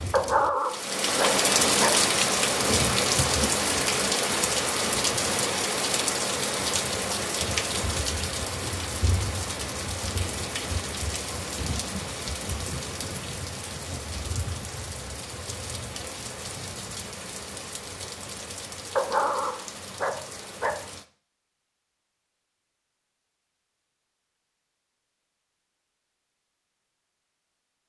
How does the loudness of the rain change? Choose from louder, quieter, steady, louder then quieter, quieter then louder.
quieter.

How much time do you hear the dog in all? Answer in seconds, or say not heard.
4 s.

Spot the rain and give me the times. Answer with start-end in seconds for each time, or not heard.
0.0-21.1.